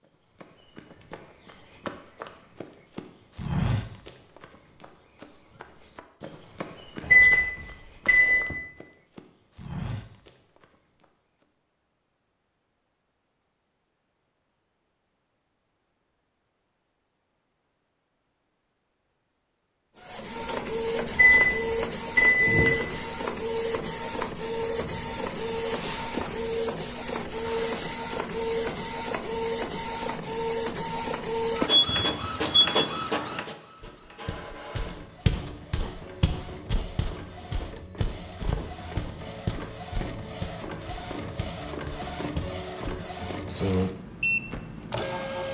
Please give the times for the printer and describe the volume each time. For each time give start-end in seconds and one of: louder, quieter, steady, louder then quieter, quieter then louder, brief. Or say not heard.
19.9-45.4 quieter then louder.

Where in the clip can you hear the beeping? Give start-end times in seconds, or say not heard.
7.0-8.6, 21.1-23.0, 31.7-32.6.